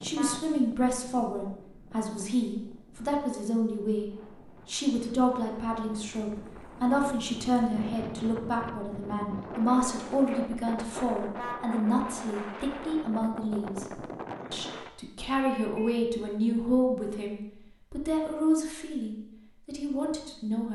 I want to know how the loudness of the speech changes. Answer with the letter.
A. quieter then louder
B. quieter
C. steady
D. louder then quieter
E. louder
C.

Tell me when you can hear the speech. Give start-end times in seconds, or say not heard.
0.0-20.6.